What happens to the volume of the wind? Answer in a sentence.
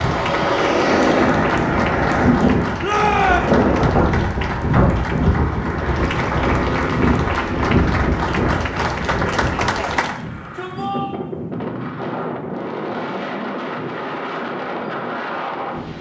The volume of the wind goes down.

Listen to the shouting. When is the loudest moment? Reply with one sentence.
The loudest moment of the shouting is at 3 seconds.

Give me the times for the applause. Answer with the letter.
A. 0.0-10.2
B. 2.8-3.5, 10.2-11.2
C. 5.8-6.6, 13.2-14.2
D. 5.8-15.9
A.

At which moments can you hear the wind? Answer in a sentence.
You can hear the wind from 0.0 to 15.9 s.